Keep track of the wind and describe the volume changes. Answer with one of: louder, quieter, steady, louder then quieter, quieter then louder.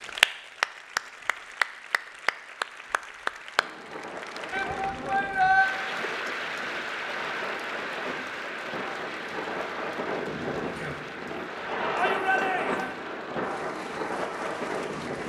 louder.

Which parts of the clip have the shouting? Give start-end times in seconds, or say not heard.
4.5-5.7, 11.9-12.9.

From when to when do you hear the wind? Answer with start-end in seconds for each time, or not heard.
3.5-15.2.